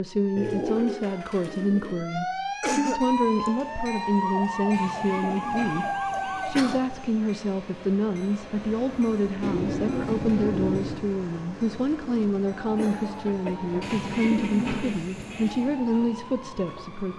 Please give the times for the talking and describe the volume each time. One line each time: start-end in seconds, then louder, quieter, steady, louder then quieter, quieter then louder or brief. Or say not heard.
0.0-17.1 steady.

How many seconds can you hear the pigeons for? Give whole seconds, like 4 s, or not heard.
7 s.